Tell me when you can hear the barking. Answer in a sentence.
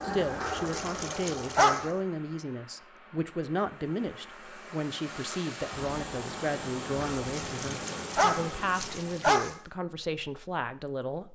The barking can be heard from 0.4 to 1.9 s and from 7.0 to 9.6 s.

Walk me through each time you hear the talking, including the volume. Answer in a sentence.
The talking can be heard from 0.0 to 11.3 s, at a steady volume.